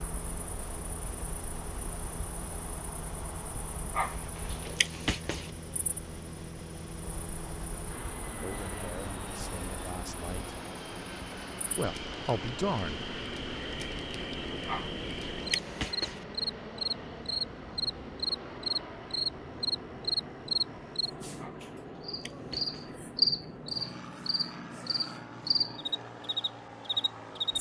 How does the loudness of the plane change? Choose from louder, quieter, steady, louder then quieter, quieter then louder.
steady.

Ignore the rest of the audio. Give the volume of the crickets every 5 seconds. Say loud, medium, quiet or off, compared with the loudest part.
quiet, quiet, medium, loud, loud, loud.